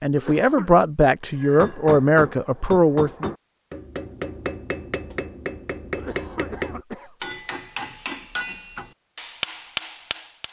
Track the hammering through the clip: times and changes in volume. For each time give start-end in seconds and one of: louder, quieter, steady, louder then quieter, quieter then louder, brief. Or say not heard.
1.3-10.4 steady.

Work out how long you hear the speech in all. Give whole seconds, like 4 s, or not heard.
3 s.